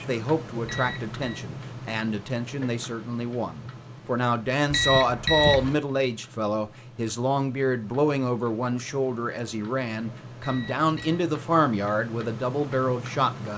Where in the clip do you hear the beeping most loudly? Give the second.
5 s.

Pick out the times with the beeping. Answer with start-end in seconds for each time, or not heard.
0.7-1.4, 4.7-5.8, 10.4-11.2.